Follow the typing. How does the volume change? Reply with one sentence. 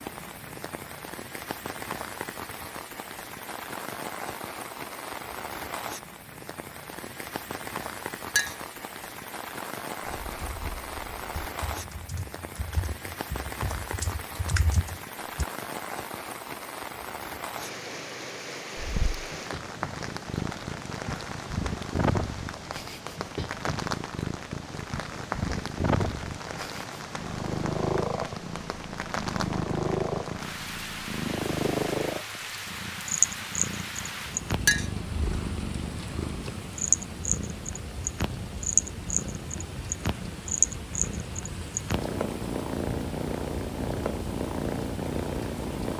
The volume of the typing goes up.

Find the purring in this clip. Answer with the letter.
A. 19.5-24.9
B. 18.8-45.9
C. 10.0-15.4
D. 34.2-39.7
B.